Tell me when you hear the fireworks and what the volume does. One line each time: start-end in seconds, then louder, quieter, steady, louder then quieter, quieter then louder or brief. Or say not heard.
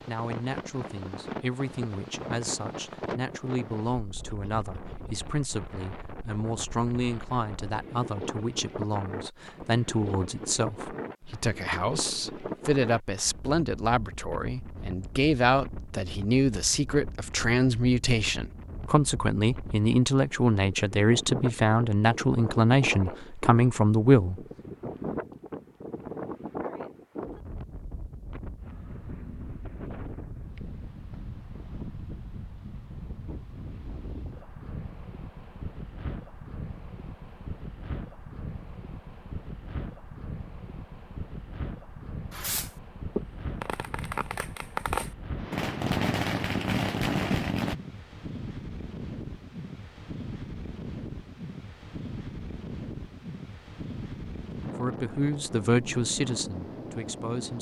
42.3-47.8 quieter then louder.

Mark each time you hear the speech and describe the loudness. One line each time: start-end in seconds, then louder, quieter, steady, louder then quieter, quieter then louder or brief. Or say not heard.
0.1-24.4 louder
54.8-57.5 brief.